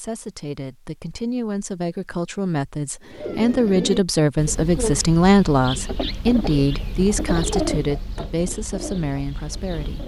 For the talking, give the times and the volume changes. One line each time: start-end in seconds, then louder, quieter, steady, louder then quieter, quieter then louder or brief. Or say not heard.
0.0-10.0 louder then quieter.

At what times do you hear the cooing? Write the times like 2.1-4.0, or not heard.
3.0-10.0.